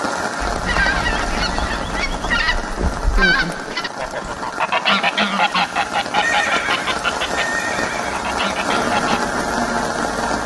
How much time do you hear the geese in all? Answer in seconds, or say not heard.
9 s.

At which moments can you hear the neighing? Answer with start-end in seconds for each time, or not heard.
0.4-2.4, 6.2-8.2.